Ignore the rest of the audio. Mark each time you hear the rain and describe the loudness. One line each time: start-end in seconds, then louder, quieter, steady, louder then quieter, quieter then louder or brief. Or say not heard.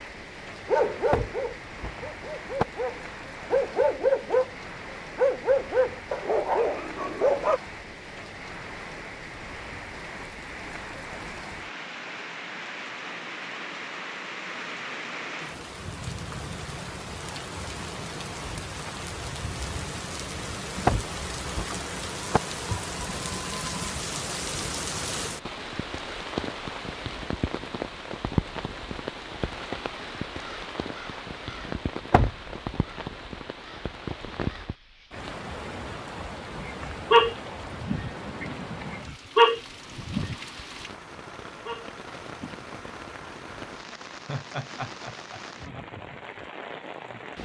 0.0-47.4 louder then quieter.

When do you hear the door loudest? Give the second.
21 s.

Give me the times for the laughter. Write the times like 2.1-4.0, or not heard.
44.2-45.4.